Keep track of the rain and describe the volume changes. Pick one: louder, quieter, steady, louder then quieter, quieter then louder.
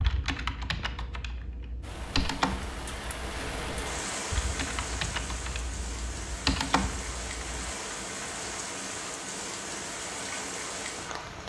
steady.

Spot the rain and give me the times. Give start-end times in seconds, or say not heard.
1.8-11.4.